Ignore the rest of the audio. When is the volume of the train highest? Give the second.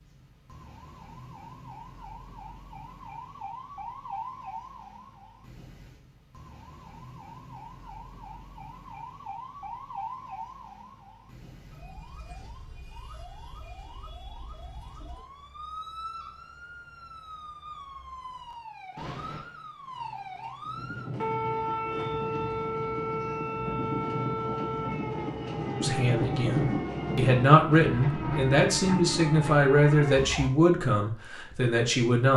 26 s.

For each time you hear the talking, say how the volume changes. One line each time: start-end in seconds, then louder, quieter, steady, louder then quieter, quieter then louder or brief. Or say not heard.
25.8-32.3 louder then quieter.